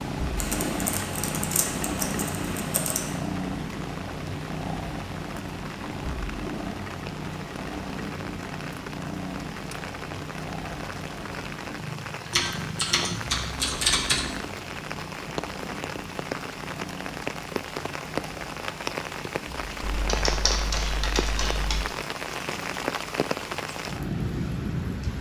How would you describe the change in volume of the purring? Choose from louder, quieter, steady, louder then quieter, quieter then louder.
quieter.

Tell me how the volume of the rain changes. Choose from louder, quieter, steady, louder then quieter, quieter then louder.
louder.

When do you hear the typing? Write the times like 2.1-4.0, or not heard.
0.3-3.2, 12.3-14.3, 19.8-21.9.